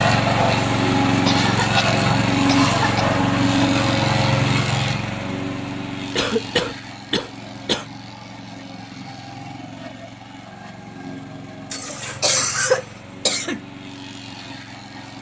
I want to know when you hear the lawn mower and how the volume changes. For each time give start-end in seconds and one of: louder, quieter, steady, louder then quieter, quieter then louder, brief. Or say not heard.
0.0-15.1 quieter.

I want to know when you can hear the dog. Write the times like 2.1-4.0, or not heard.
not heard.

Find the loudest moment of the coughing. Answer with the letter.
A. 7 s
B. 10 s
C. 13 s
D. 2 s
C.